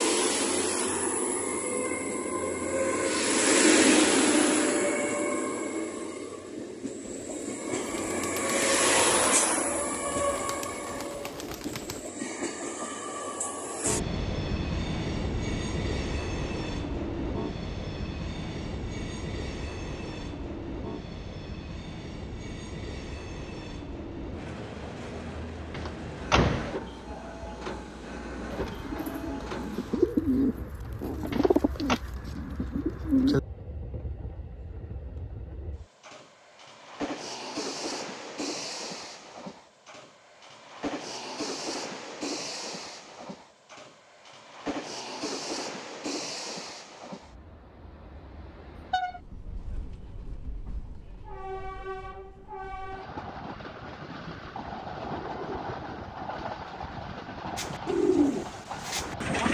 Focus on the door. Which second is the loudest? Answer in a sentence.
The loudest moment of the door is at 26 seconds.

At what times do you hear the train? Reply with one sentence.
You can hear the train from 0.0 to 59.4 s.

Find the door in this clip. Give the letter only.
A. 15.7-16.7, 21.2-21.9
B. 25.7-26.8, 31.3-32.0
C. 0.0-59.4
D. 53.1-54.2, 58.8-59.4
B.